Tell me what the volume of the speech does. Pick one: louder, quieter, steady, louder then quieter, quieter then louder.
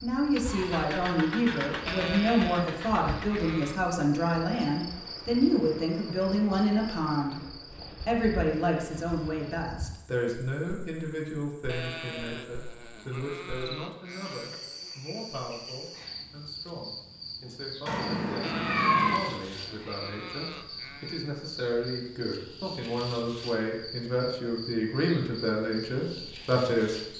quieter then louder.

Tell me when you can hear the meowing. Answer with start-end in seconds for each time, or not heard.
17.9-19.2.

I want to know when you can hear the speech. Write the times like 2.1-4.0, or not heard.
0.0-7.4, 8.1-27.1.